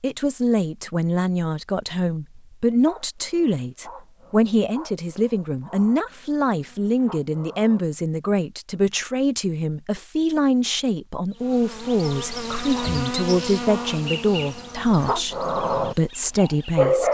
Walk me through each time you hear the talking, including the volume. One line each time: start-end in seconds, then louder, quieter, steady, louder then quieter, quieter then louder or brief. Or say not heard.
0.0-17.1 steady.